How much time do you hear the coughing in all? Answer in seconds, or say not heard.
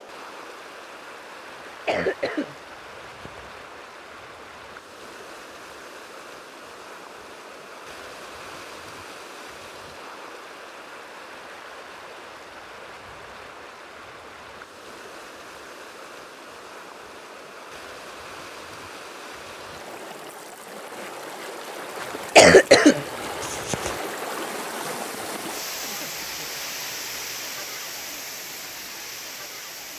4 s.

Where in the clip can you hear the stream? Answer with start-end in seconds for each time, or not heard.
0.0-29.9.